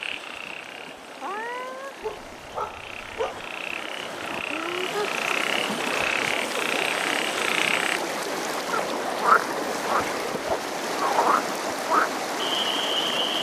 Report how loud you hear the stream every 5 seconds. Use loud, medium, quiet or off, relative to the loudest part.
medium, loud, loud.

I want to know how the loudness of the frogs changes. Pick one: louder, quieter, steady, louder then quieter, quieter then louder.
louder.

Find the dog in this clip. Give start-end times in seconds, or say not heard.
2.0-3.5.